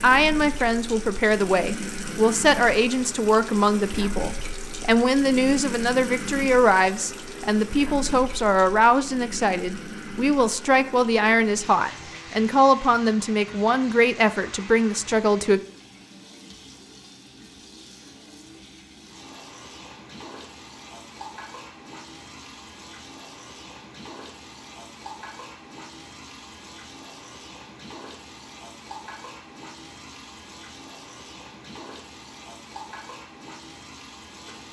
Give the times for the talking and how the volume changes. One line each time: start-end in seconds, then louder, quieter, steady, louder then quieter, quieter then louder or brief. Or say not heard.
0.0-15.6 steady.